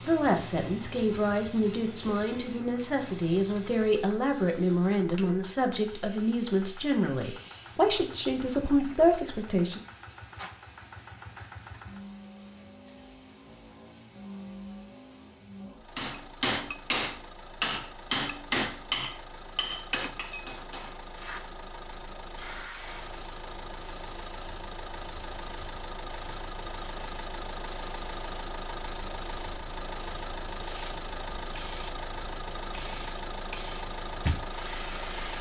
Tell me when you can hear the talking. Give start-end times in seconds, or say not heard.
0.1-9.8.